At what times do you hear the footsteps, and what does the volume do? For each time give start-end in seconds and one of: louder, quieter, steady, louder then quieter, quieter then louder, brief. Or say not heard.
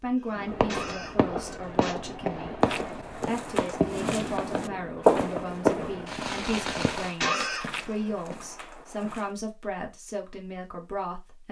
2.6-9.3 louder then quieter.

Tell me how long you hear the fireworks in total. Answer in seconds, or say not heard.
7 s.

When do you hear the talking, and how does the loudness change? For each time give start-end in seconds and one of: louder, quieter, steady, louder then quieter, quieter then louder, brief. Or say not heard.
0.0-11.4 steady.